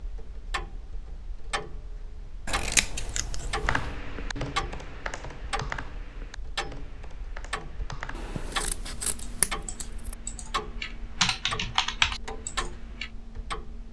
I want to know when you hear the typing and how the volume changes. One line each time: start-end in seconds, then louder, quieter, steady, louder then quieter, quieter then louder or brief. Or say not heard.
3.6-13.1 quieter then louder.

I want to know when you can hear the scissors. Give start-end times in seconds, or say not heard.
2.5-3.9, 8.2-10.2.